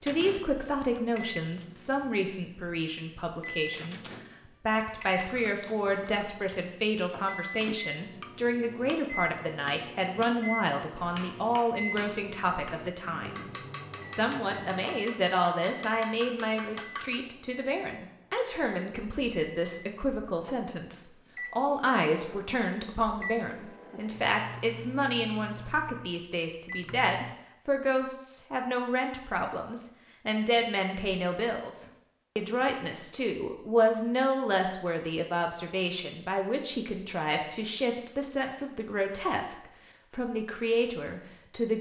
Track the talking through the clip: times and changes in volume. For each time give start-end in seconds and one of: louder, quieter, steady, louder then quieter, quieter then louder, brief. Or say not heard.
0.0-41.7 steady.